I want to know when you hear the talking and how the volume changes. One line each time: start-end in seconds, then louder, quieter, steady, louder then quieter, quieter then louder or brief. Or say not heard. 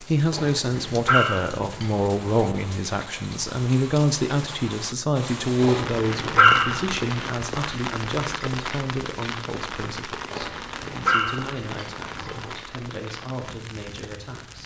0.0-14.6 quieter.